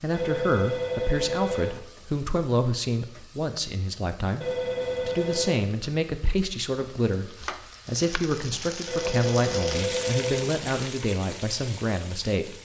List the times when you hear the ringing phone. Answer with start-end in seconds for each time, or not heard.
0.1-1.8, 4.4-5.7, 8.8-10.6.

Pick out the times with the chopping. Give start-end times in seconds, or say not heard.
7.3-8.2.